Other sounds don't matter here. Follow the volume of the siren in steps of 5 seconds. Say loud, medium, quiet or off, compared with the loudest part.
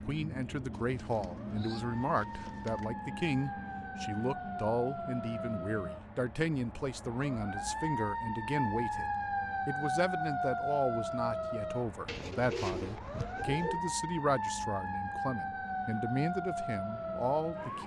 medium, loud, loud, loud.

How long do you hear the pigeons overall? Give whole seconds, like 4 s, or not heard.
4 s.